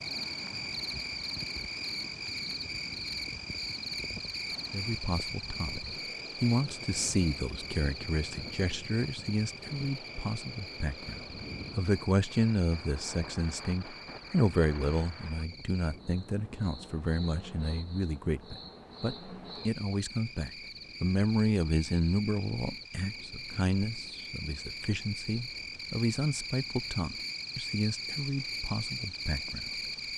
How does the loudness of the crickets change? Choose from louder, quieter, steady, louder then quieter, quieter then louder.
quieter then louder.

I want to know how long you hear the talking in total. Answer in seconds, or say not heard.
25 s.